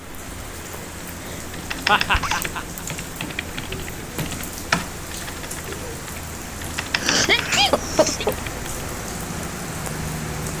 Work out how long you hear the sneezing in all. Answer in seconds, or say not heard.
3 s.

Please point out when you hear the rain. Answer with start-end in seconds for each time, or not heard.
0.0-10.5.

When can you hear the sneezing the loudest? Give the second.
7 s.